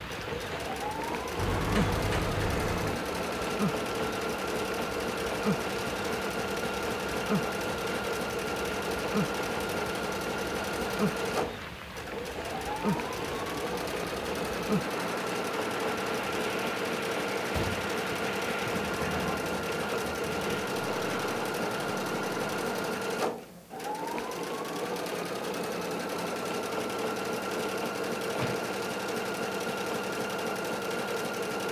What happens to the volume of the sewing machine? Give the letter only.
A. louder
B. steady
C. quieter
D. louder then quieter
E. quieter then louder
B.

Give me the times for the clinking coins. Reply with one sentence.
You can't hear the clinking coins here.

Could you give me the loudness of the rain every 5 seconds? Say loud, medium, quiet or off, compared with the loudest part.
loud, loud, loud, loud, loud, off, off.